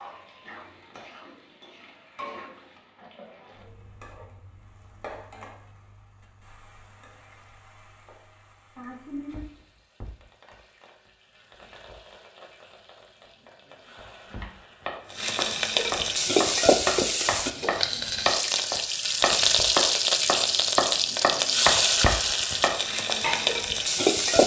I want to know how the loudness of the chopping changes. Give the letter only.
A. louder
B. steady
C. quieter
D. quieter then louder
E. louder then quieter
A.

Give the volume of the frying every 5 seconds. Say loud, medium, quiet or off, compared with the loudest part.
quiet, quiet, quiet, loud, loud.